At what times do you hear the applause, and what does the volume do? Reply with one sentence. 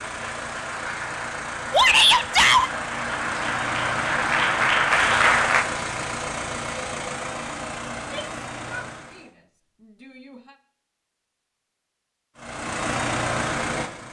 You can hear the applause from 0.0 to 5.7 s, getting louder.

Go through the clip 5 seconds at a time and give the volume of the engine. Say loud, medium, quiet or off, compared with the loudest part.
medium, loud, loud.